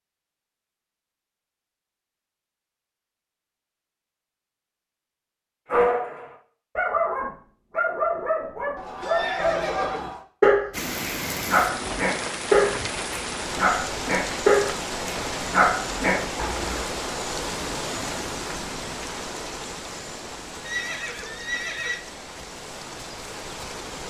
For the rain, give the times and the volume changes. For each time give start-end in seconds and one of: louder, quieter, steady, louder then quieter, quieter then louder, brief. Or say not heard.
10.7-24.0 quieter.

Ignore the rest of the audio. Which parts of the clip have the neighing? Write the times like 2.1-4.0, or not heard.
8.8-10.2, 20.6-22.0.